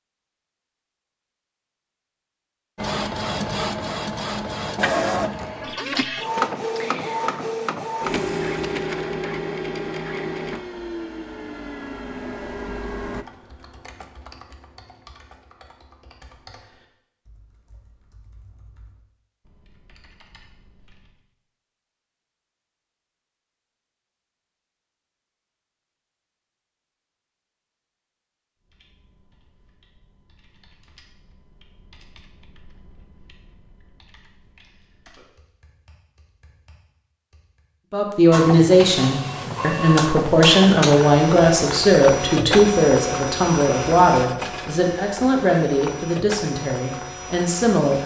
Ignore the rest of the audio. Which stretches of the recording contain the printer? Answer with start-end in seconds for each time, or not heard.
2.8-13.2, 38.3-48.0.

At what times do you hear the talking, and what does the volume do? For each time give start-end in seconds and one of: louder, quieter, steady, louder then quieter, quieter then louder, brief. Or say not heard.
37.9-48.0 quieter.